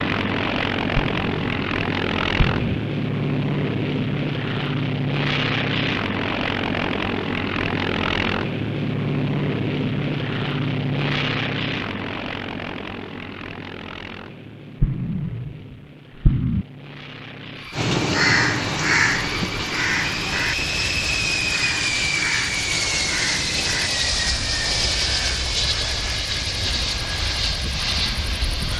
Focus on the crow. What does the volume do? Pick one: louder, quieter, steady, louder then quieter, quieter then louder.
quieter.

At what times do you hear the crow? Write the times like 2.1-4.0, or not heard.
17.7-26.3.